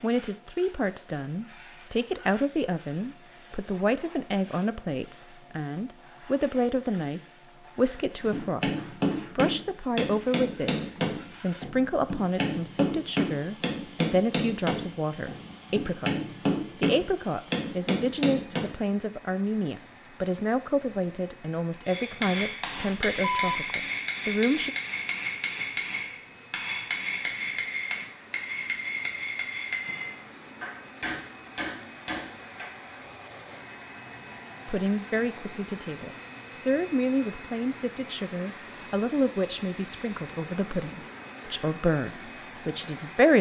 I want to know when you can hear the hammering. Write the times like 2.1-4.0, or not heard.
8.1-18.7, 21.9-32.7.